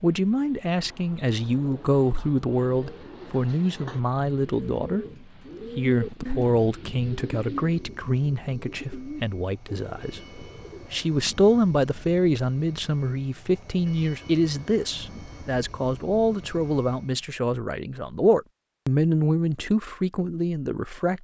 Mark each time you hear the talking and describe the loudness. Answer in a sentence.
You can hear the talking from 0.0 to 21.1 s, at a steady volume.